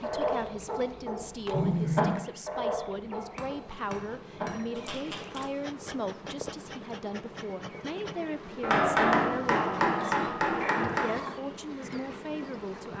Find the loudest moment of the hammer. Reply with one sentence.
The loudest moment of the hammer is at 9 seconds.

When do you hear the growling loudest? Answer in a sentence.
The loudest moment of the growling is at 2 seconds.